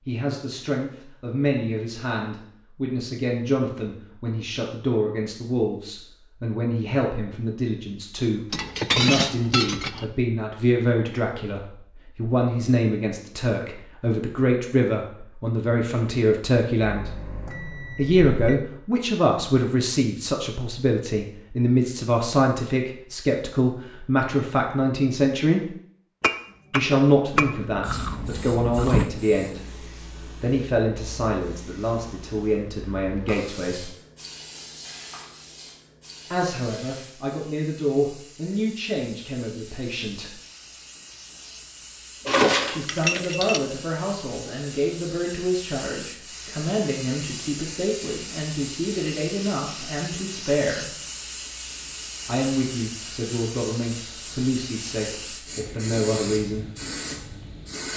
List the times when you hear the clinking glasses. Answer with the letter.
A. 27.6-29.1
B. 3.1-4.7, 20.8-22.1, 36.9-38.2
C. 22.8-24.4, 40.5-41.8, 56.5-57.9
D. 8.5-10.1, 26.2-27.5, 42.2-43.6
D.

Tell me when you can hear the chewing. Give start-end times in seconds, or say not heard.
27.6-29.1.